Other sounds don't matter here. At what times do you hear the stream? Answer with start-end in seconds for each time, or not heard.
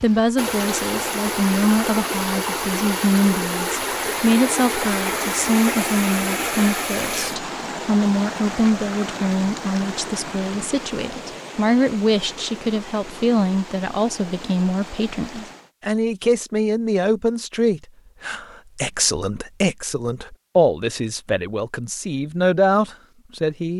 0.0-15.7.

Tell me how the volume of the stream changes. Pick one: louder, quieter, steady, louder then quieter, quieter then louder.
quieter.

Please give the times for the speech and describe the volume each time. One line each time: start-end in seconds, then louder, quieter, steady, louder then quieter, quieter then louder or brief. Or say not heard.
0.0-23.7 steady.